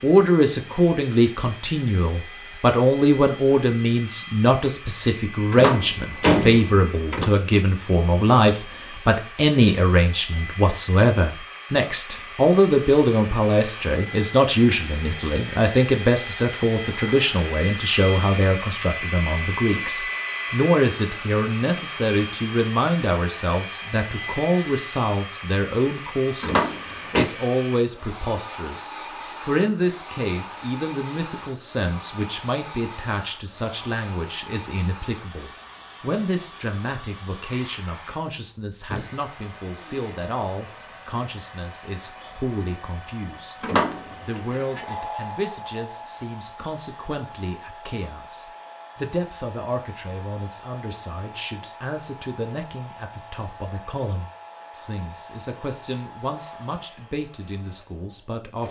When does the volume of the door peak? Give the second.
6 s.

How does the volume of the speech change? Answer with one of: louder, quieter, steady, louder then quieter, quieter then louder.
quieter.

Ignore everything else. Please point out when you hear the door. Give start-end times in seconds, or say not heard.
5.5-7.3, 26.4-27.2, 43.6-44.4.